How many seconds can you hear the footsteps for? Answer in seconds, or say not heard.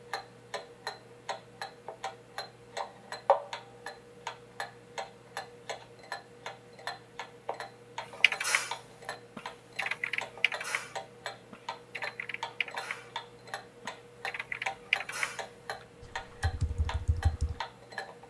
not heard.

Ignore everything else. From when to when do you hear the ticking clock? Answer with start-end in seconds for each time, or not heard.
0.0-18.2.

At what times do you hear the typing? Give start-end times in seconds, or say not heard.
8.2-8.8, 9.3-13.1, 13.8-17.6.